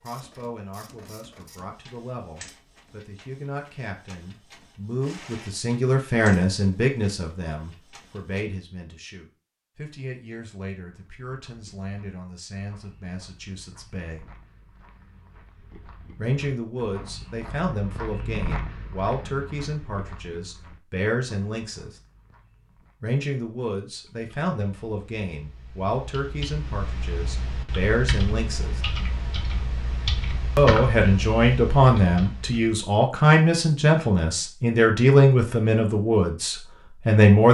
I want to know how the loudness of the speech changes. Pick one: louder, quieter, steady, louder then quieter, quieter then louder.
quieter then louder.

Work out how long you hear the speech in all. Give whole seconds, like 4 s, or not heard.
33 s.